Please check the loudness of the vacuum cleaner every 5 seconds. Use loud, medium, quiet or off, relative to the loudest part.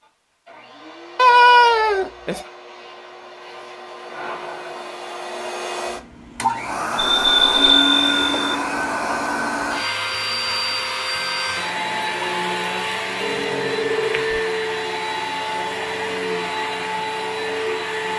quiet, loud, loud, loud.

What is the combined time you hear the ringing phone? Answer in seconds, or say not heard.
4 s.